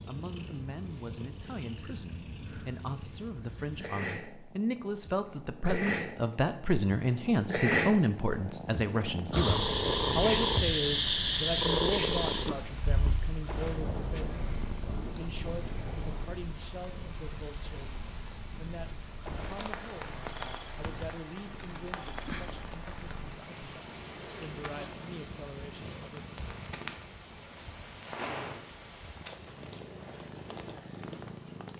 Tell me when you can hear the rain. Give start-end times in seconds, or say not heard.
9.5-31.7.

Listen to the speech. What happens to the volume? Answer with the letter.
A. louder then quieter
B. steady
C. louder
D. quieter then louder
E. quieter
A.